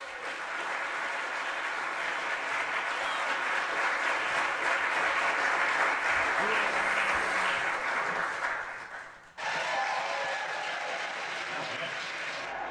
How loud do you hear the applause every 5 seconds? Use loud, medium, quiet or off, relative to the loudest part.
loud, loud, medium.